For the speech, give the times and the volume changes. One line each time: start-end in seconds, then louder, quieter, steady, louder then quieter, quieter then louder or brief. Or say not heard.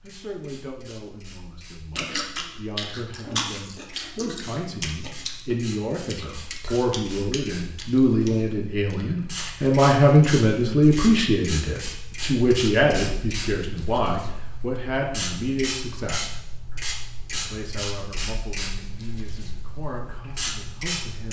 0.0-21.2 louder then quieter.